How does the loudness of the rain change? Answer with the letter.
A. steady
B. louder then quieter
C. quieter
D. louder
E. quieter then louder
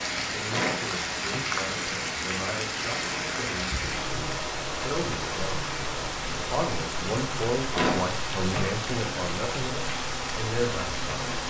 A.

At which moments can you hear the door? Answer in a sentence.
You can hear the door from 0.5 to 1.5 s and from 7.7 to 8.8 s.